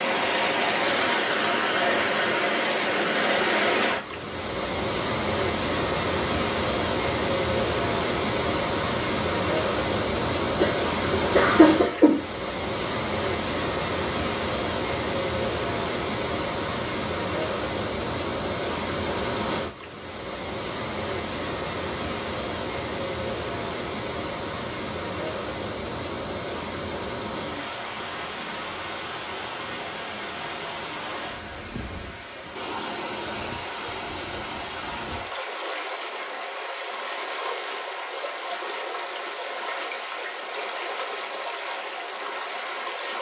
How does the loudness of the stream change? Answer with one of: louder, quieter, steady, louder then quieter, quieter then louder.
quieter.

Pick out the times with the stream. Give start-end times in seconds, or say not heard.
0.0-43.1.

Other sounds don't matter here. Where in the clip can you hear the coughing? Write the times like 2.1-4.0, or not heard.
10.6-12.2.